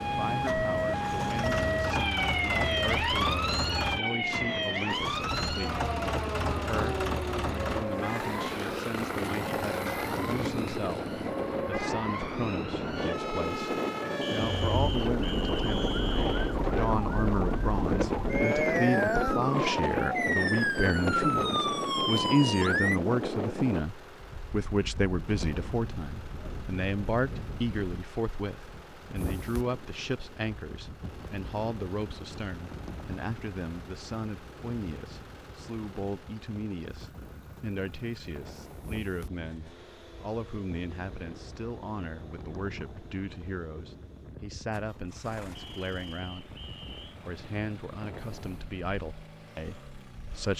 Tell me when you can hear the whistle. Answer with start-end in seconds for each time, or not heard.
14.2-16.6, 45.5-47.0.